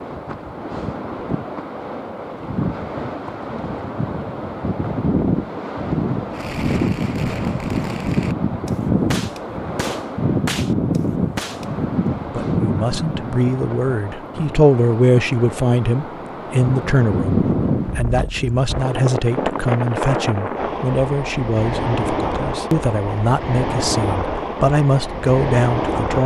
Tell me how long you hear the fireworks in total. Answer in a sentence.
You can hear the fireworks for 5 seconds altogether.